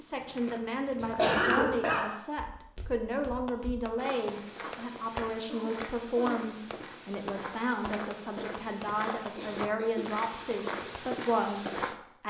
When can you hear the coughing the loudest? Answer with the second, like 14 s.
1 s.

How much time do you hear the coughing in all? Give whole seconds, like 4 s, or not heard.
3 s.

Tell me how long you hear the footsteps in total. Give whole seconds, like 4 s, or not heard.
12 s.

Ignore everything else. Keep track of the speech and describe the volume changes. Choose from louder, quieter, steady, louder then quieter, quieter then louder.
steady.